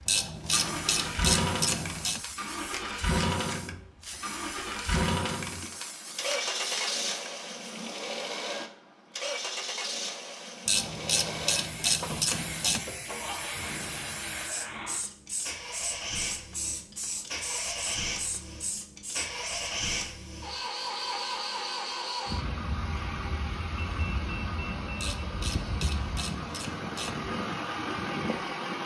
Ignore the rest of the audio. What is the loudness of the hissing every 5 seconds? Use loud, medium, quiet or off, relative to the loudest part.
loud, loud, loud, loud, off, off.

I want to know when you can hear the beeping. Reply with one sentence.
The beeping can be heard from 23.8 to 25.3 s.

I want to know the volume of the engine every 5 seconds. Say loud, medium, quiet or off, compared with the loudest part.
loud, loud, medium, loud, loud, loud.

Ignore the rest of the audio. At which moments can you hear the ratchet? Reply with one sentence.
The ratchet can be heard from 0.1 to 2.2 s, from 10.7 to 12.9 s and from 25.0 to 27.2 s.